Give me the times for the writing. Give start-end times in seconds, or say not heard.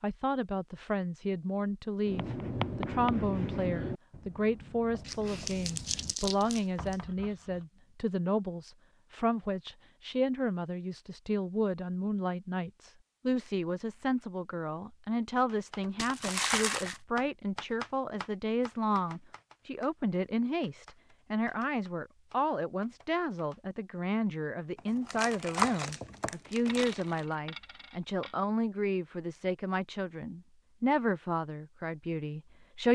2.0-7.7.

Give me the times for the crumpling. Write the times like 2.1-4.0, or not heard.
5.0-7.0, 15.9-17.0, 24.8-27.2.